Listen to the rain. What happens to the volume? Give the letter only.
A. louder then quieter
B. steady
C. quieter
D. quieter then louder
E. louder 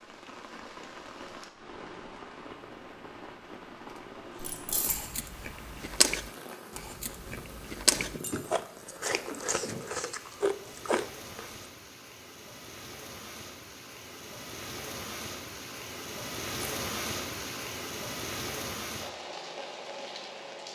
E.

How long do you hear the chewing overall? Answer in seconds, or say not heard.
7 s.